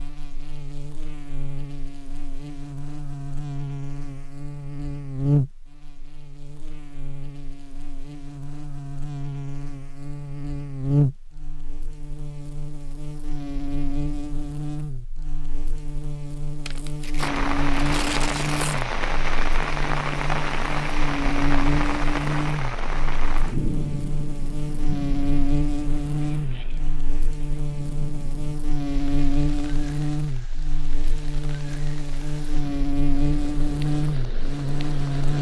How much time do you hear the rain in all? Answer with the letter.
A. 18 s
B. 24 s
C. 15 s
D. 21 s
A.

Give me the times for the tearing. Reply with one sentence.
The tearing can be heard from 16.6 to 18.9 s.